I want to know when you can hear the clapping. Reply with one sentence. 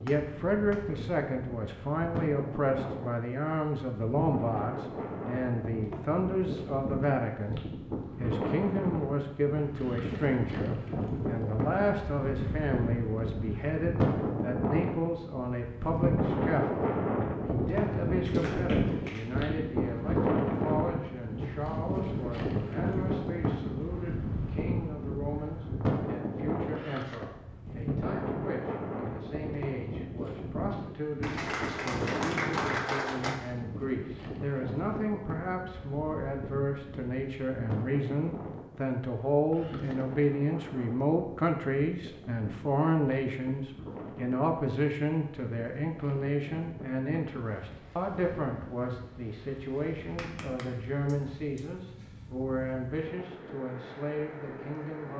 The clapping can be heard from 0.1 to 0.9 s, from 18.2 to 19.4 s, from 31.2 to 33.4 s and from 50.1 to 51.6 s.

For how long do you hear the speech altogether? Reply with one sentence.
The speech can be heard for 55 seconds in total.